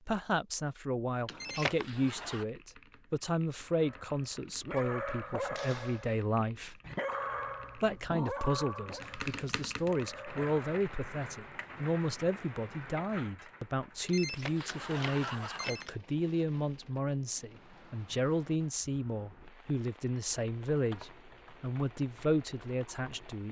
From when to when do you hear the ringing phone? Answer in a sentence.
You can hear the ringing phone from 1.4 to 2.5 s and from 14.1 to 15.8 s.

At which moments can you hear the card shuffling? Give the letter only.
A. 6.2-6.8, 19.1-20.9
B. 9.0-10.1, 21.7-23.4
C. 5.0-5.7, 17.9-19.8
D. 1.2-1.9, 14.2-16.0
D.